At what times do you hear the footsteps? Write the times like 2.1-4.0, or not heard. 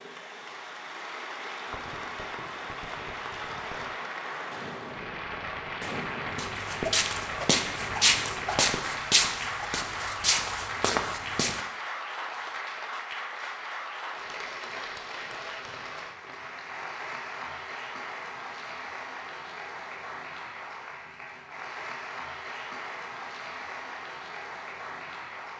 6.2-11.6.